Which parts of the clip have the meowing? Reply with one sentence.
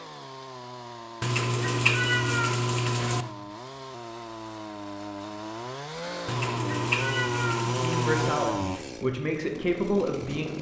You can hear the meowing from 1.2 to 3.2 s and from 6.2 to 8.3 s.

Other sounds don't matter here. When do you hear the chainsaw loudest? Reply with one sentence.
The loudest moment of the chainsaw is at 8 seconds.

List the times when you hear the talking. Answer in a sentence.
The talking can be heard from 7.7 to 10.5 s.